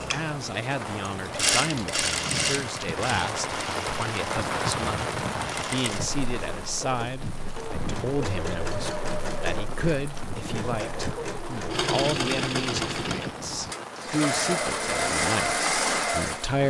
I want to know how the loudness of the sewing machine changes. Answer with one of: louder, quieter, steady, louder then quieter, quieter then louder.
quieter then louder.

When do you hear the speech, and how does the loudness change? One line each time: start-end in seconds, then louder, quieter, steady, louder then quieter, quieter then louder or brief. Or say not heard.
0.1-16.6 steady.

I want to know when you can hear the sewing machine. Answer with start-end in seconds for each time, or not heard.
0.0-16.6.